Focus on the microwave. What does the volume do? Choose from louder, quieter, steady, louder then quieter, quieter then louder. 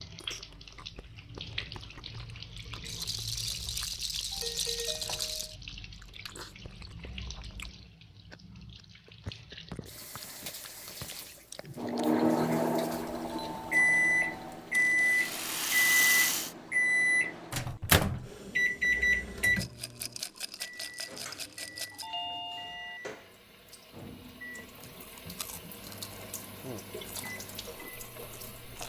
quieter.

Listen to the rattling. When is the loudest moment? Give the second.
16 s.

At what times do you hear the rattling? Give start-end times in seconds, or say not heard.
2.9-5.5, 14.7-16.6, 19.6-22.1.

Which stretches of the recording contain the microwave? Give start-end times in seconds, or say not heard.
11.8-28.8.